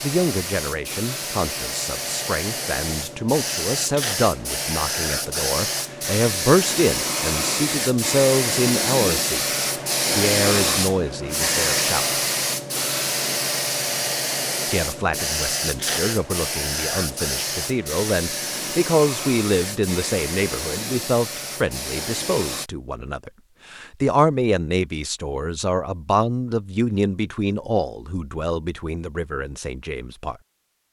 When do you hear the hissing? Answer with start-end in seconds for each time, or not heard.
0.0-22.7.